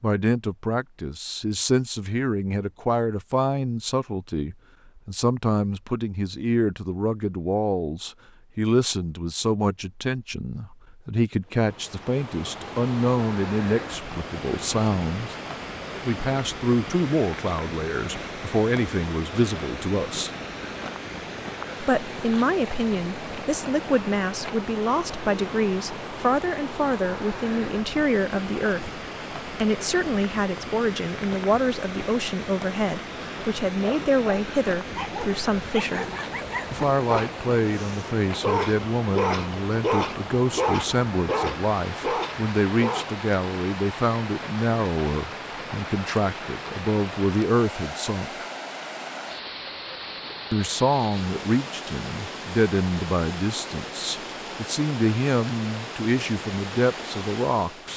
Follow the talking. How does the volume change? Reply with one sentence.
The volume of the talking stays about the same.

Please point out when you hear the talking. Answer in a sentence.
You can hear the talking from 0.0 to 15.3 s, from 16.1 to 20.3 s, from 21.8 to 36.0 s, from 36.7 to 48.5 s and from 50.5 to 57.9 s.